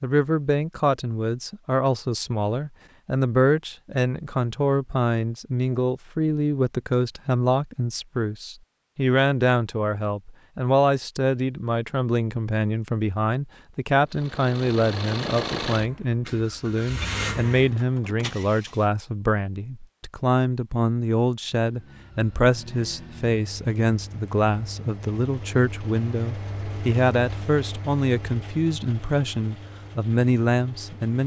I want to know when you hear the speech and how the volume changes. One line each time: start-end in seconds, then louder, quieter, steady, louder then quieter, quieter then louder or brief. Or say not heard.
0.0-31.2 steady.